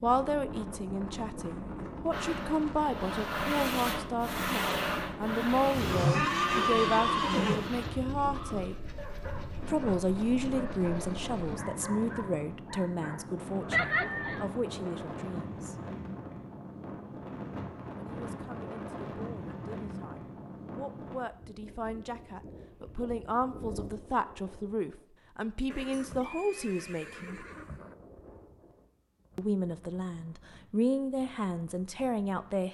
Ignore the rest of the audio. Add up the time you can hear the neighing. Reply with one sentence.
You can hear the neighing for 5 seconds altogether.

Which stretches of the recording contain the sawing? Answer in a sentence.
You can hear the sawing from 2.1 to 11.6 s.